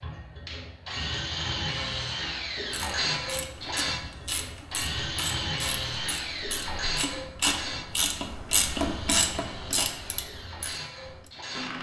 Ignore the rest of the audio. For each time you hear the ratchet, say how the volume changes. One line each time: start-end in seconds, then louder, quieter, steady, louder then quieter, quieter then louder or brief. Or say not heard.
2.7-11.3 louder then quieter.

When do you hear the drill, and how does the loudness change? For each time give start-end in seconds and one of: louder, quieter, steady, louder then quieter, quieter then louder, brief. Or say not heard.
0.0-11.7 quieter.